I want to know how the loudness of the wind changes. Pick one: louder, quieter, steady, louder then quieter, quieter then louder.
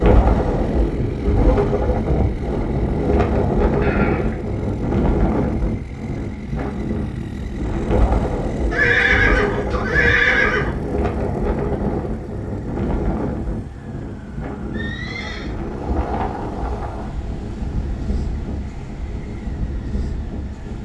quieter.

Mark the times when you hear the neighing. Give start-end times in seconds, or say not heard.
3.8-4.5, 8.7-10.7, 14.7-15.5.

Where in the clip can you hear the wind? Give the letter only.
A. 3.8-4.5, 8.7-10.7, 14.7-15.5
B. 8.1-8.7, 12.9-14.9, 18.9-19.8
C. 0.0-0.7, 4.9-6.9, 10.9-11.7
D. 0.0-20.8
D.